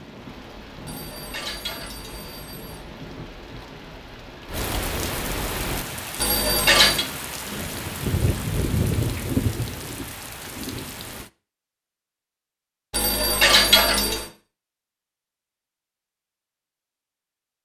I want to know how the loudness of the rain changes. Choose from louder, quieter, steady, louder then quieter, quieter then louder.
louder.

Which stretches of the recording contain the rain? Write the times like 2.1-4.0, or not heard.
0.0-11.3.